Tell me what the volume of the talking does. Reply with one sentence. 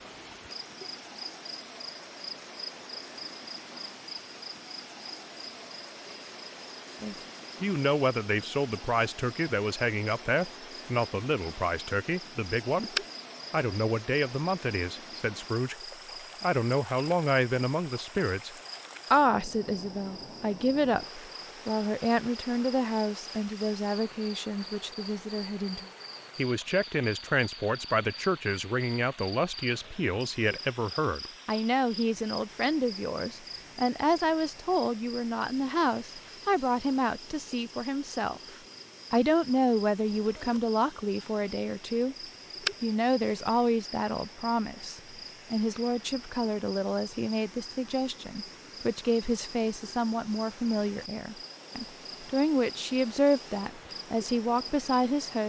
The volume of the talking stays about the same.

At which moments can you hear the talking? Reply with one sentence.
The talking can be heard from 7.0 to 15.8 s and from 16.4 to 55.4 s.